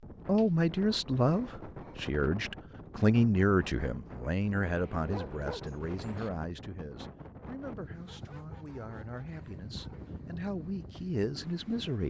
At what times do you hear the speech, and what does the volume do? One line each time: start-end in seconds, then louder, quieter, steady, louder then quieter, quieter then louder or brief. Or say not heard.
0.2-12.0 quieter then louder.